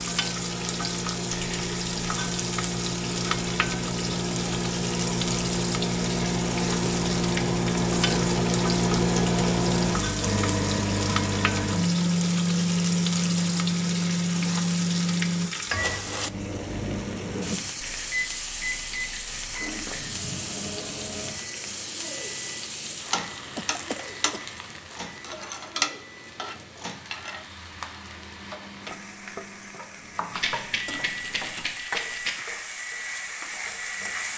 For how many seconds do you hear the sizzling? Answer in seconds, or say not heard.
34 s.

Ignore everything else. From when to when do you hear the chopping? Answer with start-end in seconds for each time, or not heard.
29.7-34.3.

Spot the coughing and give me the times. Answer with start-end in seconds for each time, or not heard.
23.6-24.4.